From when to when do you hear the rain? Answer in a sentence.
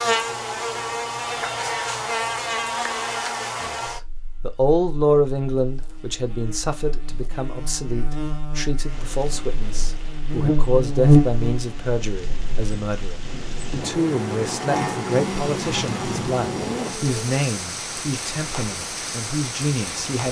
The rain can be heard from 8.8 to 20.2 s.